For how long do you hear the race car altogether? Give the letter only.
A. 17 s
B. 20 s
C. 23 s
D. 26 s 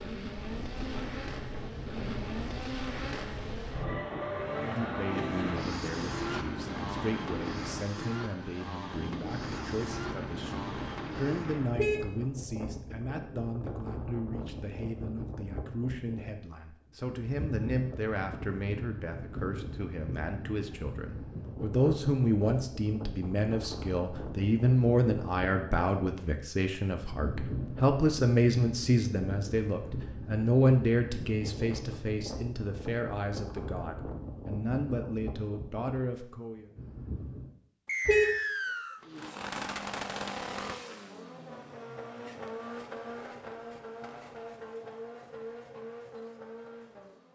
B.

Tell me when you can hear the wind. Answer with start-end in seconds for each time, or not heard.
0.0-37.5.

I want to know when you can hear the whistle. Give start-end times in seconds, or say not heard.
37.9-39.0.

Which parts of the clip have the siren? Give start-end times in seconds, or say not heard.
not heard.